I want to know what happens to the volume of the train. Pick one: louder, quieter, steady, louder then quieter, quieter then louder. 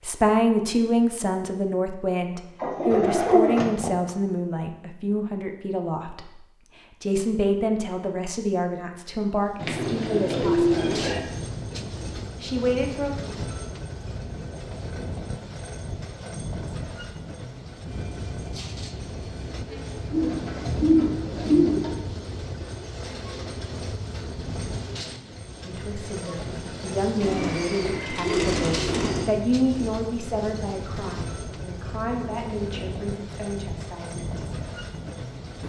steady.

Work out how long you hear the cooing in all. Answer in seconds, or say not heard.
7 s.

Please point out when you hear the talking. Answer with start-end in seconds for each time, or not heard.
0.0-6.4, 7.0-10.8, 12.4-13.2, 25.6-34.5.